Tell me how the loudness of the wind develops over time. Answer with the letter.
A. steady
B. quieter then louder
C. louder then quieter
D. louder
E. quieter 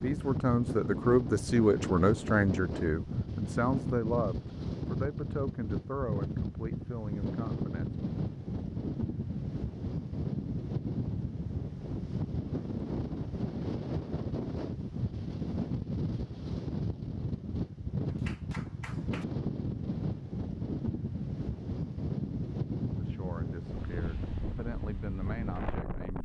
A.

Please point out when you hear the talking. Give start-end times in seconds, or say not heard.
0.0-8.0, 22.9-26.1.